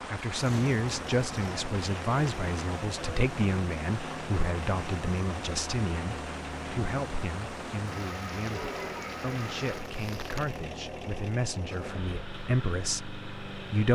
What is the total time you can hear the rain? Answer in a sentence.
The rain can be heard for 11 seconds in total.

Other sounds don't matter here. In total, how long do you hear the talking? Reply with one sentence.
The talking can be heard for 14 seconds in total.